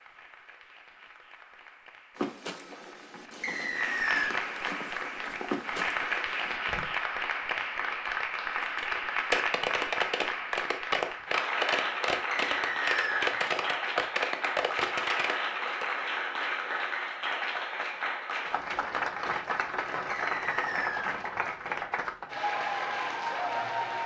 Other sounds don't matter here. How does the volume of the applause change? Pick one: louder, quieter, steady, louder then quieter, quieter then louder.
louder.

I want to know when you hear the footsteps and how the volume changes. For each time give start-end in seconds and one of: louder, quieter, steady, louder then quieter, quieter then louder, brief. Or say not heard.
2.1-7.0 louder then quieter.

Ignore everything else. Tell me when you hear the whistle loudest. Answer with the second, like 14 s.
4 s.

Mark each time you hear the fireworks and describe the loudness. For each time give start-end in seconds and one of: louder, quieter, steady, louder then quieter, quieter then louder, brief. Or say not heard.
8.6-15.9 steady.